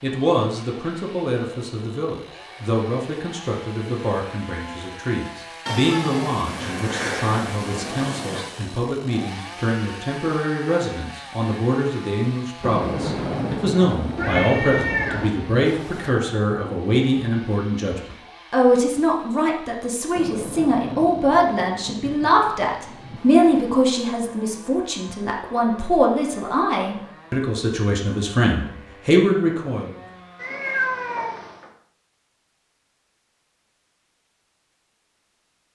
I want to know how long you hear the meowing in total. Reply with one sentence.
You can hear the meowing for 5 seconds altogether.